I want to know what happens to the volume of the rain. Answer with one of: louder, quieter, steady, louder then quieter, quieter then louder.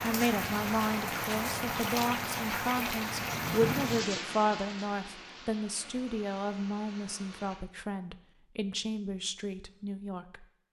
quieter.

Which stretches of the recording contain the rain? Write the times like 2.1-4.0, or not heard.
0.0-7.5.